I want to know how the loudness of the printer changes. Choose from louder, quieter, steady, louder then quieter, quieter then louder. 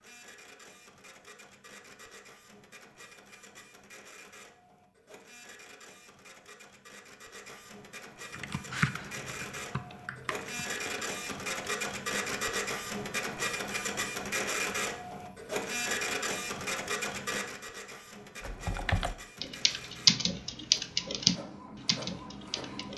louder then quieter.